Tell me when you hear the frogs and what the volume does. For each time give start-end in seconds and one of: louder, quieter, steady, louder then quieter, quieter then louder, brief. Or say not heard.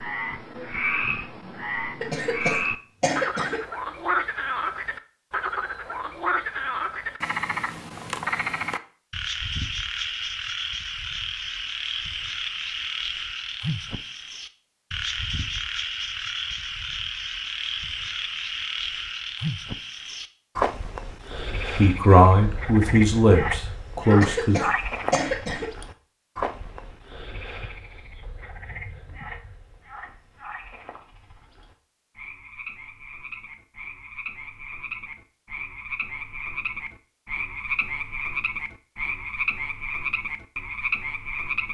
0.0-41.7 quieter then louder.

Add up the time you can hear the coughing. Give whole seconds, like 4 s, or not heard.
3 s.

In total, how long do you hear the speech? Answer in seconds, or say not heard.
3 s.